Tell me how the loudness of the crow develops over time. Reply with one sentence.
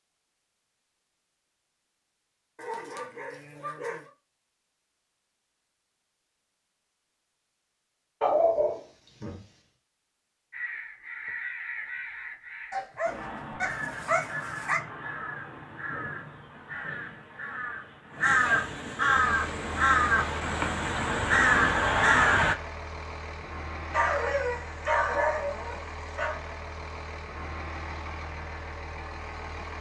The volume of the crow goes up.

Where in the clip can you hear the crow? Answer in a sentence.
You can hear the crow from 10.5 to 22.6 s.